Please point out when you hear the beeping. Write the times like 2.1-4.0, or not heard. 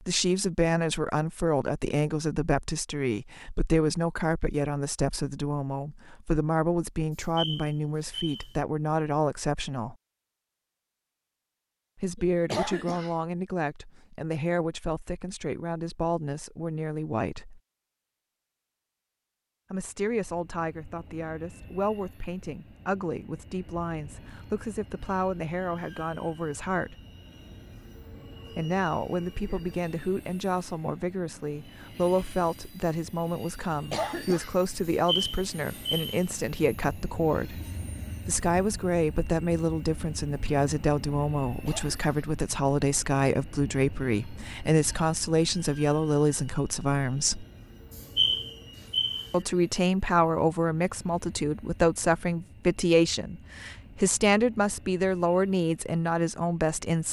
7.2-8.6, 34.9-36.2, 48.0-49.4.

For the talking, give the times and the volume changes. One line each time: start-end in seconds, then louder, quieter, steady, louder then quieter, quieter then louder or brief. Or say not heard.
0.1-9.9 steady
11.9-17.6 steady
19.7-27.0 steady
28.5-37.6 steady
38.2-47.5 steady
49.3-57.0 steady.